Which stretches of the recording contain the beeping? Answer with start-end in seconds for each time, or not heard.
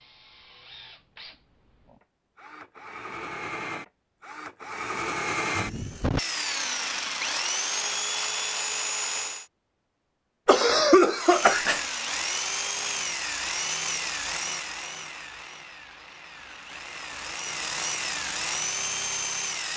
not heard.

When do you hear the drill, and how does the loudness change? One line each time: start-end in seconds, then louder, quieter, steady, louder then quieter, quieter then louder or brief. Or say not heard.
0.0-9.4 louder
11.2-19.7 quieter then louder.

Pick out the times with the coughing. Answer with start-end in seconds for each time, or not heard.
10.4-11.8.